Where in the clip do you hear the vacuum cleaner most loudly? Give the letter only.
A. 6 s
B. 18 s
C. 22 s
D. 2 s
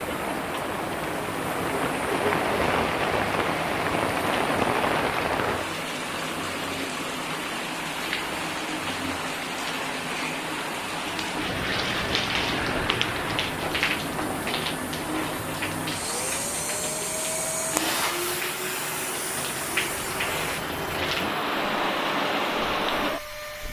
B.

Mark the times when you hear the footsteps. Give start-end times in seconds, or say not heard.
not heard.